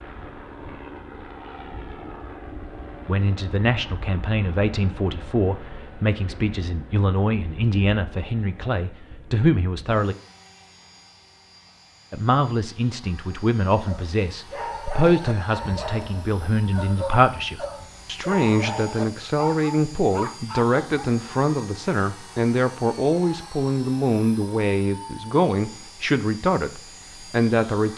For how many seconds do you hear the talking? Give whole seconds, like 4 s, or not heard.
23 s.